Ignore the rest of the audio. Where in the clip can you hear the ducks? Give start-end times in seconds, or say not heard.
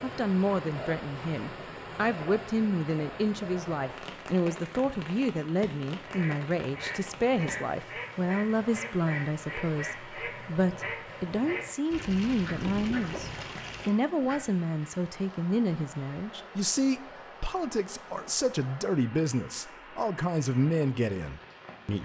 6.0-14.4.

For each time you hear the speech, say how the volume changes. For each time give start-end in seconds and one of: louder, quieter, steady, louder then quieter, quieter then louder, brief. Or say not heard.
0.0-22.0 steady.